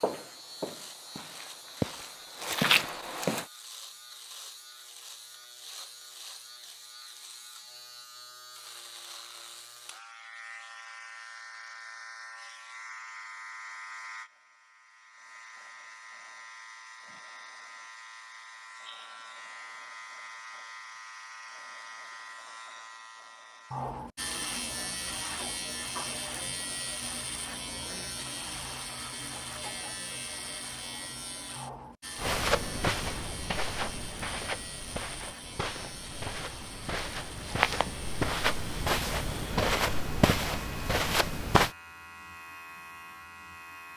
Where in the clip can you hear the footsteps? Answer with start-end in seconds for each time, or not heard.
0.0-3.5, 32.1-41.7.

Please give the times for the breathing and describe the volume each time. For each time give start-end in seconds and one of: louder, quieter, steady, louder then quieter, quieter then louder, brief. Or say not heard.
not heard.